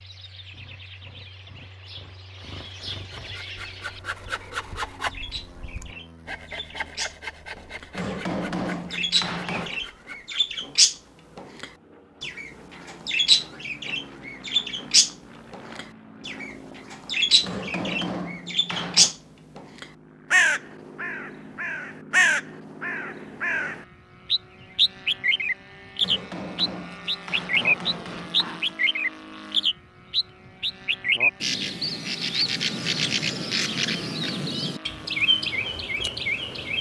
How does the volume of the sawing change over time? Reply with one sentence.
The volume of the sawing goes down.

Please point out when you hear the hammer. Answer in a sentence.
You can hear the hammer from 7.9 to 9.8 s, from 17.4 to 19.1 s and from 26.0 to 28.8 s.